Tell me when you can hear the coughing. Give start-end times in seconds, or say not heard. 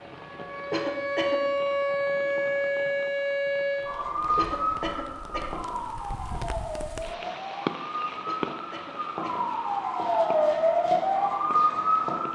0.7-1.4, 4.3-5.6, 8.2-9.5.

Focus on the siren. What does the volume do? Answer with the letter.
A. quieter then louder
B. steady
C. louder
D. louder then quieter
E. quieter
A.